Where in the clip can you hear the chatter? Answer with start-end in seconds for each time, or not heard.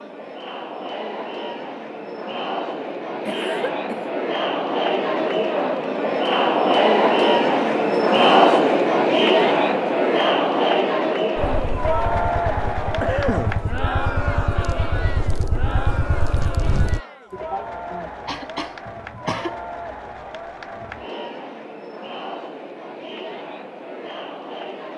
0.0-24.9.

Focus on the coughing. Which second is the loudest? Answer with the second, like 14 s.
13 s.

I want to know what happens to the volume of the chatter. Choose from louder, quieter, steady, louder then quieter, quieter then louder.
louder then quieter.